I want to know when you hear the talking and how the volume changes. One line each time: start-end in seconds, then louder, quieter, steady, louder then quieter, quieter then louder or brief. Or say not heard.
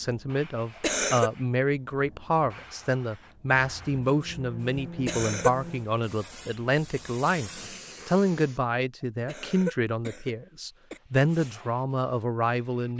0.0-12.9 steady.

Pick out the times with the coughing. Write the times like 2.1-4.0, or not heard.
0.6-1.3, 5.0-5.5, 9.2-11.0.